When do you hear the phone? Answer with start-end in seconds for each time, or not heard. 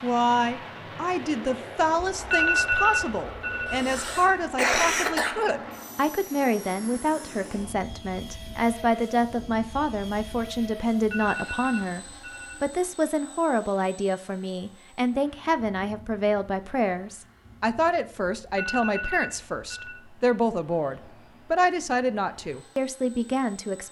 1.9-4.4, 11.0-12.8, 18.4-20.0.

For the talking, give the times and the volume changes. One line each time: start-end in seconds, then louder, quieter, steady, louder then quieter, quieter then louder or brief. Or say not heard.
0.0-23.8 steady.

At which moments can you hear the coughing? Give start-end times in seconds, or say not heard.
3.6-5.3.